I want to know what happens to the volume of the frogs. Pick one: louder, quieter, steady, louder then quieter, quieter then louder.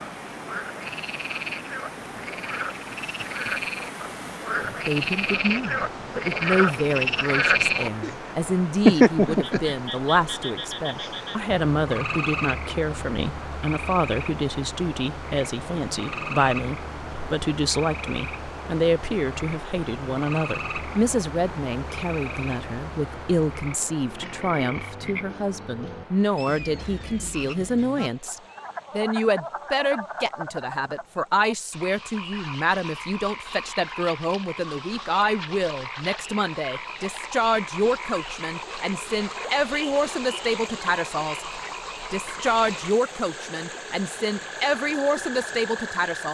quieter.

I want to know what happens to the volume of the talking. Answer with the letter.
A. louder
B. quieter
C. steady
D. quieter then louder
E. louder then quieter
C.